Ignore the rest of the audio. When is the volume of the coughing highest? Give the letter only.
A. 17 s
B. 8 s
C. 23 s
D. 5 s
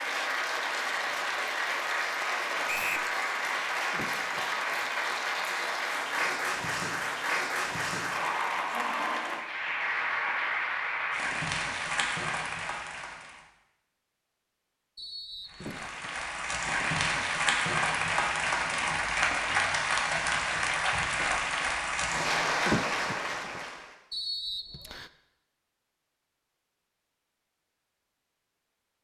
C.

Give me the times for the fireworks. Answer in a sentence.
The fireworks can't be heard in this clip.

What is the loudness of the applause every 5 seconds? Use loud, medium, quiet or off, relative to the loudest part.
loud, loud, loud, loud, loud, off.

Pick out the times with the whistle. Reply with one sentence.
You can hear the whistle from 2.6 to 3.1 s, from 14.9 to 15.9 s and from 24.1 to 25.1 s.